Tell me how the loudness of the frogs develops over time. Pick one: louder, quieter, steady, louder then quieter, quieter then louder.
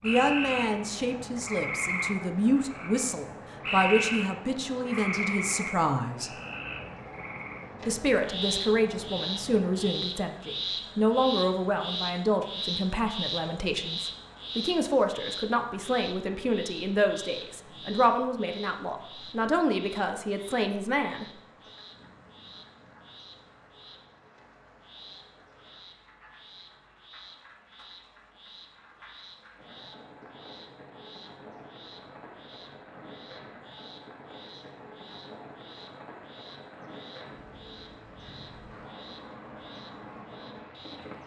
quieter.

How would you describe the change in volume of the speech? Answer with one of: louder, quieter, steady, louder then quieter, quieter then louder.
steady.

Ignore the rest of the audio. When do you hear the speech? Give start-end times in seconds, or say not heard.
0.0-6.3, 7.8-21.2.